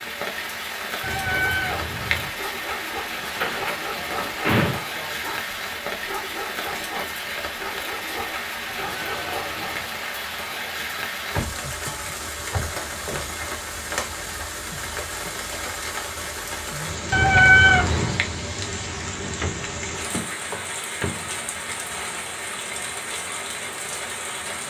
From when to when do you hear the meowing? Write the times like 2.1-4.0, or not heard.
1.0-2.3, 8.8-9.9, 17.1-18.2.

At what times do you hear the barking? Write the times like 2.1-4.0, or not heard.
1.3-9.8.